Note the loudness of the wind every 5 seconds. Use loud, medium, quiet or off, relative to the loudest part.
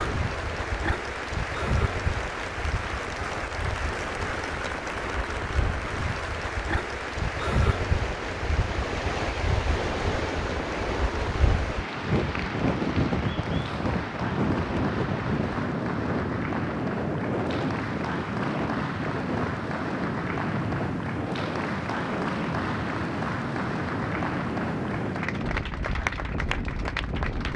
medium, loud, loud, loud, loud, medium.